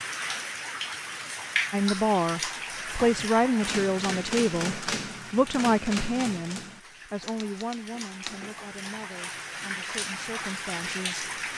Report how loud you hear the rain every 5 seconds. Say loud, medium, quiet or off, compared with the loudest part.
loud, medium, loud.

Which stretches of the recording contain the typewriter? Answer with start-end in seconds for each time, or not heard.
3.0-8.9.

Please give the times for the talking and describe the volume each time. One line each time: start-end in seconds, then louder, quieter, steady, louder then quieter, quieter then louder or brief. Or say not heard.
1.7-11.3 quieter.